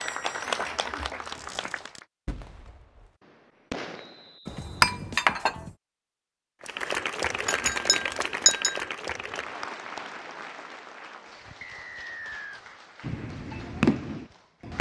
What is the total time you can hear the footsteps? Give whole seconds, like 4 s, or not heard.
not heard.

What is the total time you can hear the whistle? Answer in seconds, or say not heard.
2 s.